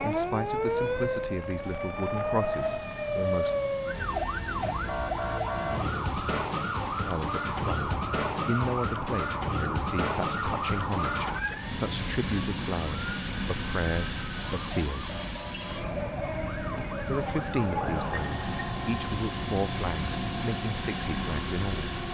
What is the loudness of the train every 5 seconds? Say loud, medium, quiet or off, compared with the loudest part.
medium, medium, loud, loud, loud.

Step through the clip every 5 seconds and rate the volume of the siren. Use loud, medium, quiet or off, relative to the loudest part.
loud, loud, loud, medium, medium.